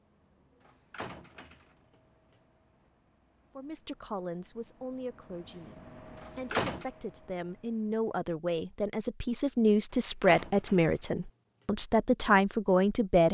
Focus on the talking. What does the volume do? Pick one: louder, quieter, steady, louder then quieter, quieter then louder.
louder.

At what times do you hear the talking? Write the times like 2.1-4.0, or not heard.
3.5-13.2.